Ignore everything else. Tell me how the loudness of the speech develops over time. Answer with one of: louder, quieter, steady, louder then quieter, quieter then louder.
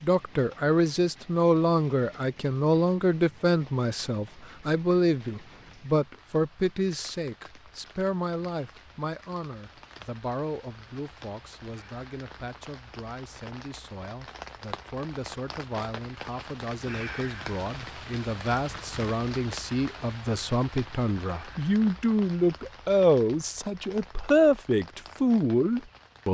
quieter then louder.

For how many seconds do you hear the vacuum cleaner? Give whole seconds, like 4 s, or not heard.
not heard.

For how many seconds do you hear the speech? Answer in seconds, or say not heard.
26 s.